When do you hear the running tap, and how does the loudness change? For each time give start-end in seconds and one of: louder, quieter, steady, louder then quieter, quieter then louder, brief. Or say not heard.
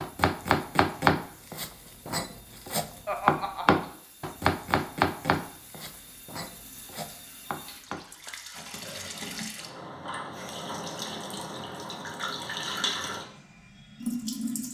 0.0-14.7 louder.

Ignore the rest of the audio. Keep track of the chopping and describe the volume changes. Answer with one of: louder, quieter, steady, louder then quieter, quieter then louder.
quieter.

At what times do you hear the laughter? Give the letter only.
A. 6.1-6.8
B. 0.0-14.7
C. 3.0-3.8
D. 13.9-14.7
C.